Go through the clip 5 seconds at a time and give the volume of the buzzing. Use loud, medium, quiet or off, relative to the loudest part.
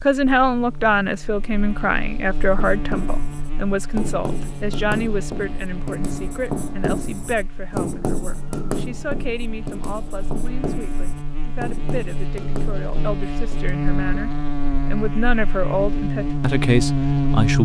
quiet, quiet, medium, loud.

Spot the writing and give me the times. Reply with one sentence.
You can hear the writing from 2.4 to 13.8 s.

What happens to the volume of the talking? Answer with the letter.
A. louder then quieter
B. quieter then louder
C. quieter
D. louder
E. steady
B.